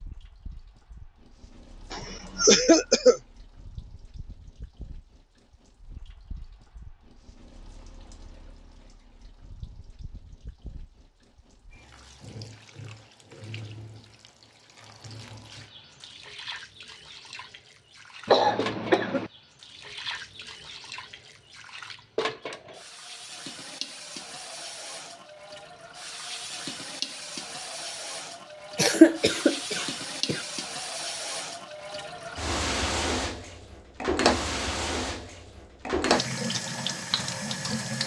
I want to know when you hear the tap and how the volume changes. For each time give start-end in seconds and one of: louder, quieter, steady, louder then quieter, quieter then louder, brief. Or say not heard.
0.0-38.0 louder.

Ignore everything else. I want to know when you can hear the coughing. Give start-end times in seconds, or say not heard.
1.9-3.2, 18.2-19.3, 28.8-30.4.